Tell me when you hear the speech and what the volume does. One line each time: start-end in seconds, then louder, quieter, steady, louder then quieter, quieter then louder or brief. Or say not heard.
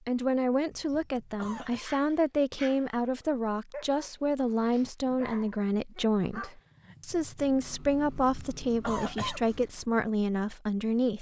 0.1-11.1 steady.